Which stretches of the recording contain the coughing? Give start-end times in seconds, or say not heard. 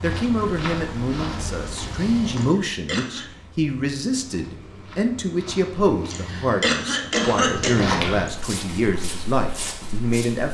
2.4-3.3, 6.1-8.3.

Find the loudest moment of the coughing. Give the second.
7 s.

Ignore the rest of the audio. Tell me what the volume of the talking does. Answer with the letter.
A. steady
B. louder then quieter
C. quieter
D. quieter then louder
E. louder
A.